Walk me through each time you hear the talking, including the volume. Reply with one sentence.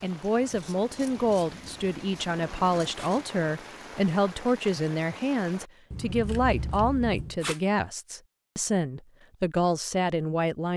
You can hear the talking from 0.0 to 10.7 s, at a steady volume.